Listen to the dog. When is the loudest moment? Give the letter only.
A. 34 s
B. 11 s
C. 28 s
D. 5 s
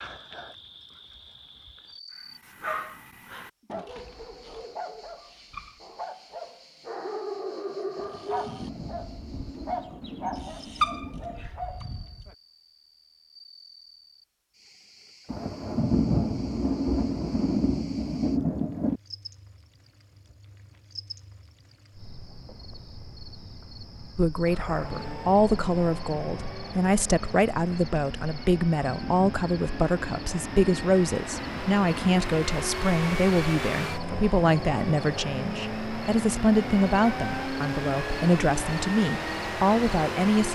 B.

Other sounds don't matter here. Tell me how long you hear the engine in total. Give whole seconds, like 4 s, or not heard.
16 s.